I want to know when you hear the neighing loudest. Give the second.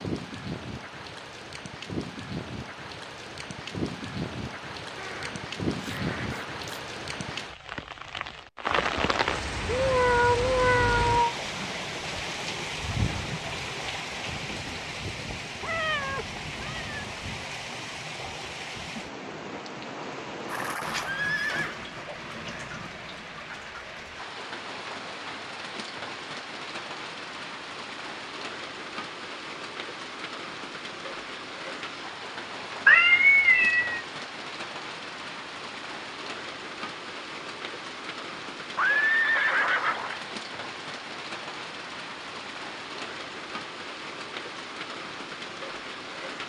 39 s.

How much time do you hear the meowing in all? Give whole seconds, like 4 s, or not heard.
4 s.